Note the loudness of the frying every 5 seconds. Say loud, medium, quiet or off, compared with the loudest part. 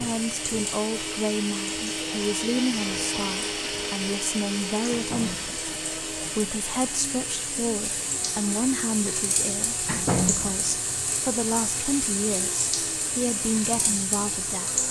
medium, loud, loud.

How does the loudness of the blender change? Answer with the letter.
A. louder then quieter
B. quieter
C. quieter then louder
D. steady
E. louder
B.